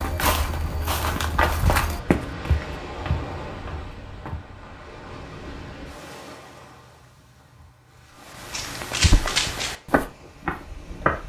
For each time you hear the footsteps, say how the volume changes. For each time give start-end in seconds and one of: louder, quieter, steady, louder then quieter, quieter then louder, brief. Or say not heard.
0.0-4.4 louder then quieter
8.4-11.2 brief.